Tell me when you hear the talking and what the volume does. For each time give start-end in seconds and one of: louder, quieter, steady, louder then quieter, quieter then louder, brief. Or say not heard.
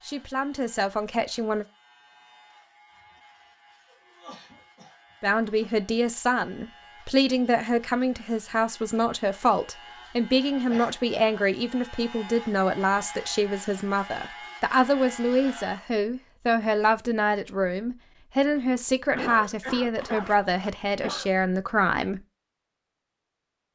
0.0-1.6 brief
5.2-22.2 steady.